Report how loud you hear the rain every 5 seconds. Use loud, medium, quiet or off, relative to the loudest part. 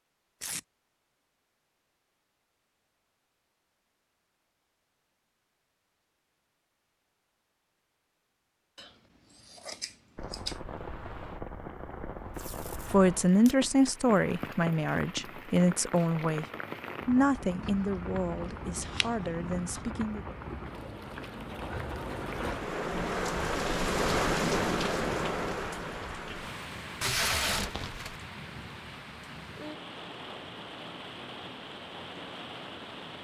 off, off, medium, medium, loud, medium, medium.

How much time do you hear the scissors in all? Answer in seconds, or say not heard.
4 s.